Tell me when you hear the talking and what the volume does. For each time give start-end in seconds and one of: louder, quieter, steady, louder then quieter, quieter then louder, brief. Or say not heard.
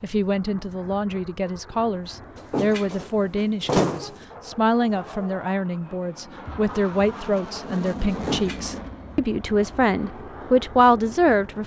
0.0-11.6 louder.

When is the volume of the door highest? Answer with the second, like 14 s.
4 s.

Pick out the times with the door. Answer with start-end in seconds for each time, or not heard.
2.4-4.2, 8.1-8.8.